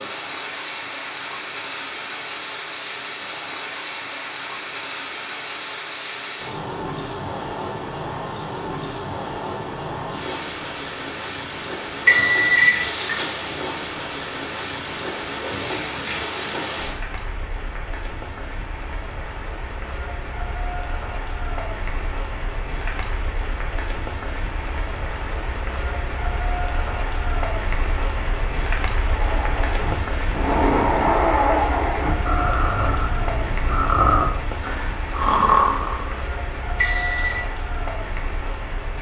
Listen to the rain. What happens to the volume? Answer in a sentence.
The loudness of the rain stays about the same.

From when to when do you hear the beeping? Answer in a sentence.
The beeping can be heard from 12.1 to 13.4 s and from 36.8 to 37.4 s.